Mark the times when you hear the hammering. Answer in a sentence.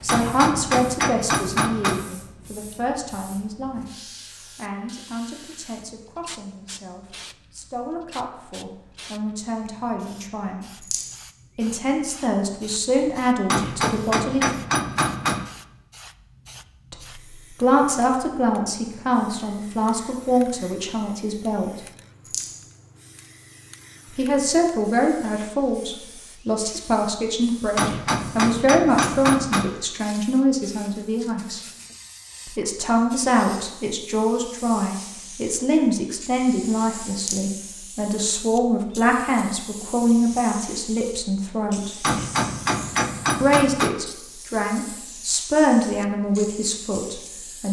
The hammering can be heard from 0.1 to 2.0 s, from 13.5 to 15.4 s, from 27.8 to 29.8 s and from 42.0 to 44.0 s.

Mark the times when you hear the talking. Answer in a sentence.
The talking can be heard from 0.0 to 10.8 s, from 11.6 to 14.5 s, from 16.9 to 21.8 s, from 24.1 to 31.6 s, from 32.5 to 42.1 s and from 43.4 to 47.6 s.